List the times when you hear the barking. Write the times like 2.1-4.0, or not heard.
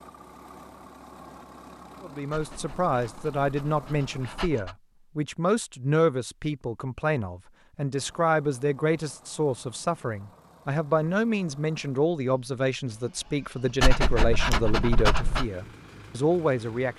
2.3-4.8, 13.8-15.4.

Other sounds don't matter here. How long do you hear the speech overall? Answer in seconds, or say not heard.
15 s.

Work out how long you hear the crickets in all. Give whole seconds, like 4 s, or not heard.
not heard.